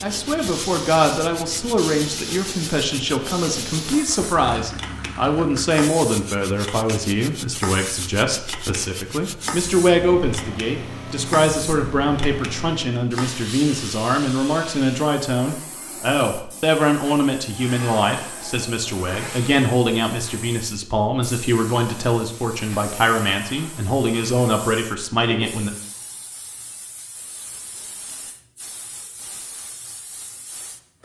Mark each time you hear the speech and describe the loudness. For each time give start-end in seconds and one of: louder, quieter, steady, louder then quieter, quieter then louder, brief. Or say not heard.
0.0-25.7 steady.